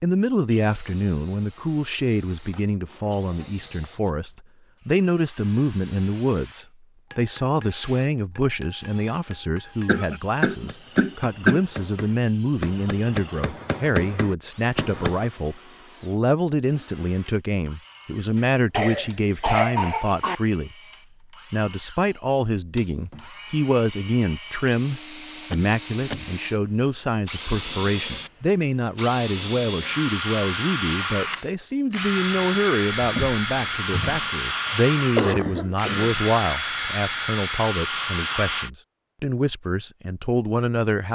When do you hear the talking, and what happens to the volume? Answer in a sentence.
The talking can be heard from 0.0 to 20.8 s, at a steady volume; and from 21.5 to 41.1 s, at a steady volume.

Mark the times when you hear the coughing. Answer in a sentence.
The coughing can be heard from 9.8 to 11.6 s, from 18.4 to 20.4 s and from 34.6 to 36.1 s.